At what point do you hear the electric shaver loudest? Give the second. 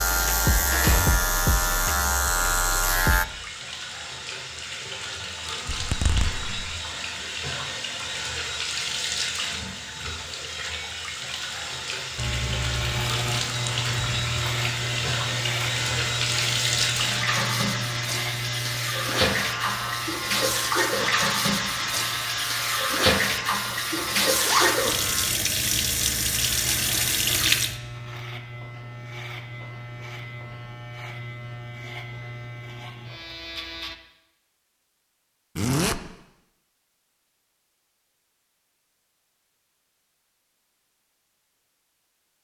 1 s.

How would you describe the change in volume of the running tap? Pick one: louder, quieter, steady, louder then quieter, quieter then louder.
louder.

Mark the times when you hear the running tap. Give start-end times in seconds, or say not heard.
0.0-27.8.